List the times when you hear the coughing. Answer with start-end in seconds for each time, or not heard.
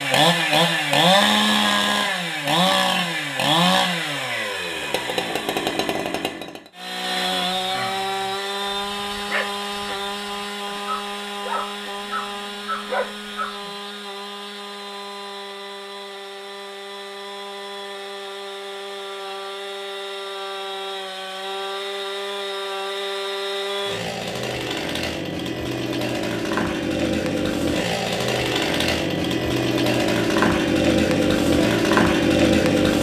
not heard.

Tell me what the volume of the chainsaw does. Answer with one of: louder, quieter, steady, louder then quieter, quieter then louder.
quieter then louder.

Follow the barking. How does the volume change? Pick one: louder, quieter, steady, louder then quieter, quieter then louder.
louder.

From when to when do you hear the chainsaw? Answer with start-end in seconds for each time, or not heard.
0.0-32.9.